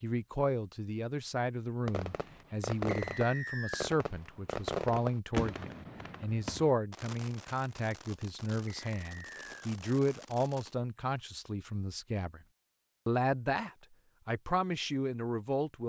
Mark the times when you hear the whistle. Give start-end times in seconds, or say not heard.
2.9-3.9, 8.7-9.7.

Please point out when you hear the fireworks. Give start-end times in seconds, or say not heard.
1.9-10.8.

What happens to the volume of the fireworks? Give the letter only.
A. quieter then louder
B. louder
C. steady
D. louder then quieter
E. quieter
E.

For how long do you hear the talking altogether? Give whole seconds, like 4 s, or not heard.
15 s.